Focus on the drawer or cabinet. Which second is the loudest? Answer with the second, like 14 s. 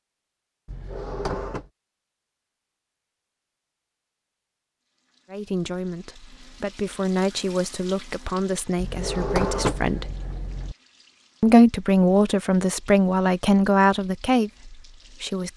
10 s.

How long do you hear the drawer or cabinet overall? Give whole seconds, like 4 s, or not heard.
3 s.